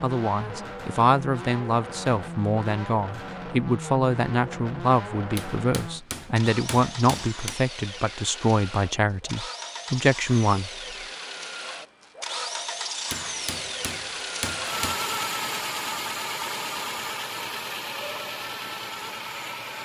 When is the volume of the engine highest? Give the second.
15 s.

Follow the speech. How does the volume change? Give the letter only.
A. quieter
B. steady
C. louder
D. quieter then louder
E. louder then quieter
B.